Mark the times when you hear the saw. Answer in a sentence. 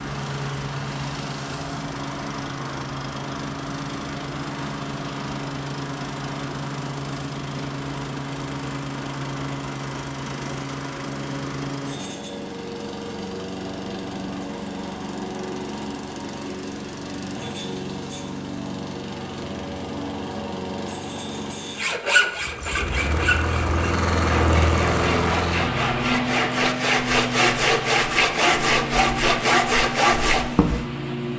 The saw can be heard from 21.8 to 30.9 s.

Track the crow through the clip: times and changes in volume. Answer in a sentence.
You can't hear the crow here.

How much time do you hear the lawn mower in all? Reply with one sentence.
The lawn mower can be heard for 31 seconds in total.